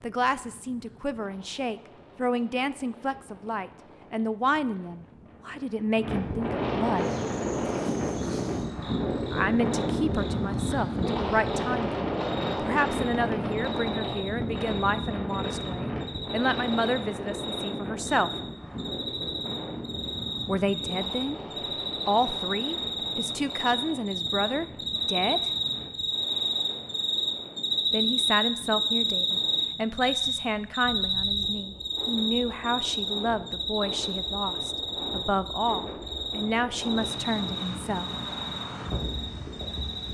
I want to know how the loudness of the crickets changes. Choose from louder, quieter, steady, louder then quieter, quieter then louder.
louder then quieter.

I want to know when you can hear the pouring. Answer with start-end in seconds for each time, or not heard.
not heard.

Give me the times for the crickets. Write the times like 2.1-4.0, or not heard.
7.0-40.0.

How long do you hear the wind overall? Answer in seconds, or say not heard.
40 s.